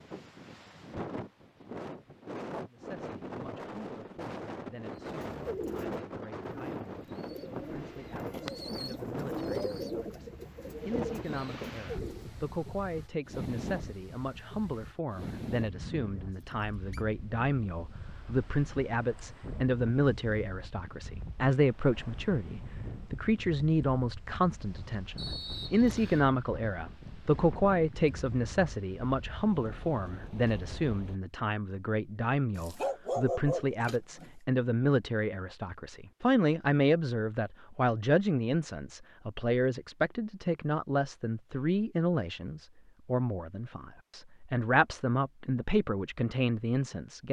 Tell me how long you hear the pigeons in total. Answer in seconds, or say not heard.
7 s.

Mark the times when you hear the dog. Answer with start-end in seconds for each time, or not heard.
32.5-34.3.